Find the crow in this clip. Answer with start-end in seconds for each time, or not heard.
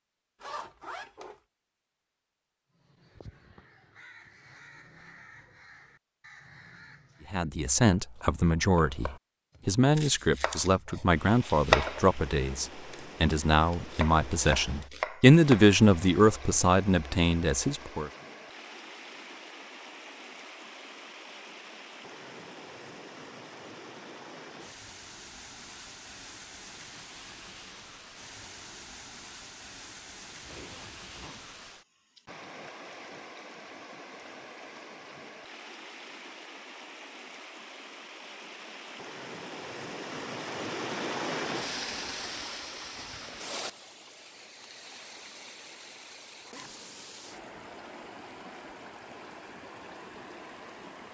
2.8-7.5.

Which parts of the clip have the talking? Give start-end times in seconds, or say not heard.
7.3-18.1.